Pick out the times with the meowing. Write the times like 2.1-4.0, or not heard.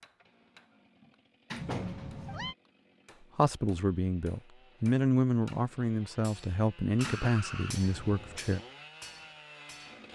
1.6-2.5, 7.0-8.4.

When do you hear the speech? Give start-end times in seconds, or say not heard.
3.4-8.6.